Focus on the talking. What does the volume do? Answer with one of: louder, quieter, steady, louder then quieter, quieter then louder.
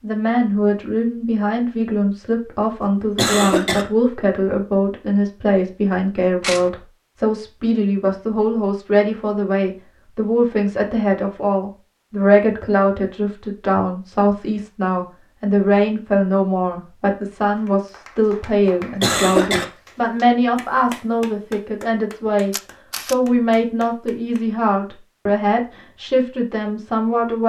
steady.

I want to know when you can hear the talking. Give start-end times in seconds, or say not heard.
0.0-27.4.